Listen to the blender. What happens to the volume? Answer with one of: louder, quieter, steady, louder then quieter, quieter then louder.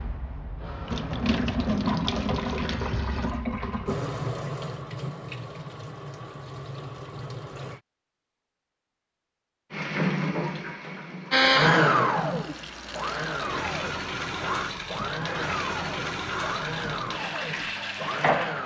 quieter.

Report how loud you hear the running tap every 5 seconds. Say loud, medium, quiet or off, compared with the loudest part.
loud, medium, loud, loud.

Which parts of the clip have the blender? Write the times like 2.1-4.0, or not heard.
11.3-18.6.